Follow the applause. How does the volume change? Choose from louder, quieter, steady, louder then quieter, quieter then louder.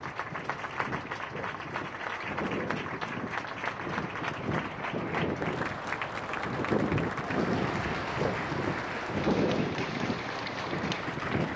steady.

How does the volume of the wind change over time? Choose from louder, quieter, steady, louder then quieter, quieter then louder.
louder.